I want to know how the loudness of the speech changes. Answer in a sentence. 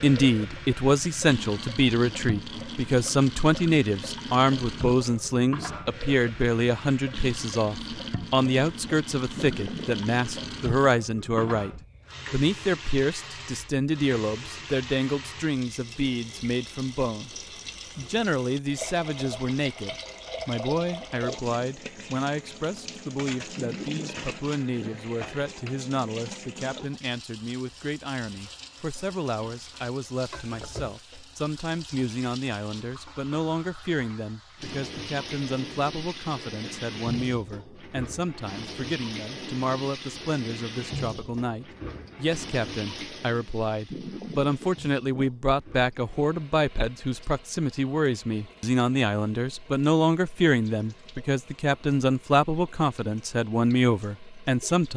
The volume of the speech goes down, then up.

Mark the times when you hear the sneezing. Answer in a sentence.
The sneezing can be heard from 9.3 to 10.1 s, from 23.6 to 25.1 s and from 43.9 to 45.3 s.